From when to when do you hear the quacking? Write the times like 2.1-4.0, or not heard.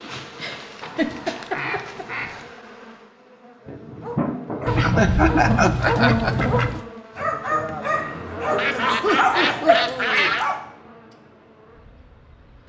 0.8-2.5, 4.7-6.8, 8.6-10.4.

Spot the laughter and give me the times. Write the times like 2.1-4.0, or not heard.
0.3-2.0, 4.8-6.3, 9.0-10.3.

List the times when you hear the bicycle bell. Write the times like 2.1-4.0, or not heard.
not heard.